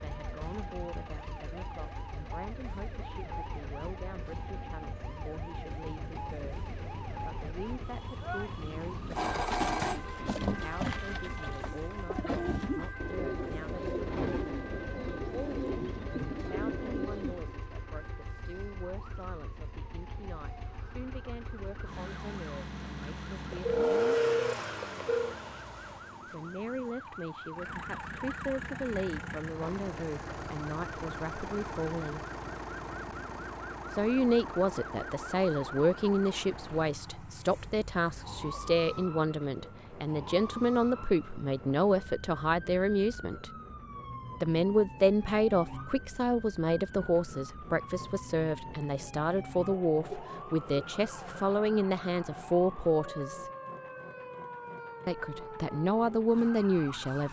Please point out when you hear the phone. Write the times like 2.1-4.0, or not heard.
9.1-10.0, 23.5-25.4, 50.1-50.9.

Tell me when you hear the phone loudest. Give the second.
24 s.